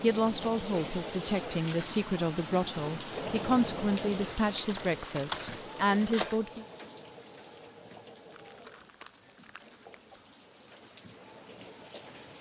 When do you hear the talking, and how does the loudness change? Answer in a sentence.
You can hear the talking from 0.0 to 6.7 s, at a steady volume.